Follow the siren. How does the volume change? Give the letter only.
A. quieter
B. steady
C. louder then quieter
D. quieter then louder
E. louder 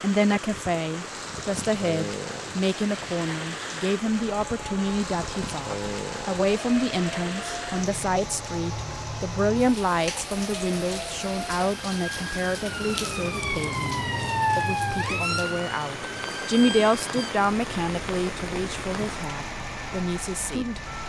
C.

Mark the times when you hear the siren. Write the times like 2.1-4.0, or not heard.
4.0-21.0.